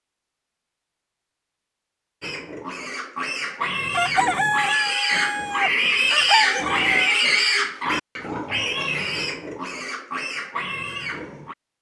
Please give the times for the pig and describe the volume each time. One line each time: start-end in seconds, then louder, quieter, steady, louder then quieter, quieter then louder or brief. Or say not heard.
2.2-11.6 louder then quieter.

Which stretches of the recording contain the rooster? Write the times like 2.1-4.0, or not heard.
3.9-7.2.